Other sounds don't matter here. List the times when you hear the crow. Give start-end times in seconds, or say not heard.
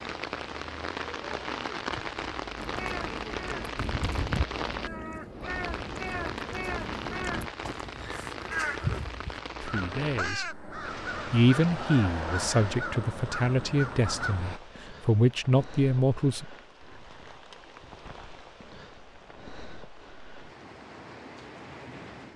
2.5-14.6.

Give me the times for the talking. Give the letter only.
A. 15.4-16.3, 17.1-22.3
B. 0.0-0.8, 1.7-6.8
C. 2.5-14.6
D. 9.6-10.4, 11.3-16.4
D.